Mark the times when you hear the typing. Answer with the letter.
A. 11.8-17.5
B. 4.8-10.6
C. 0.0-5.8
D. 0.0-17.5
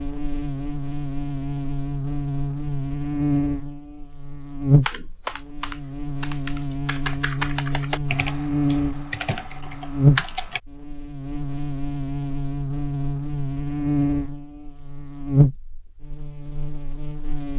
B.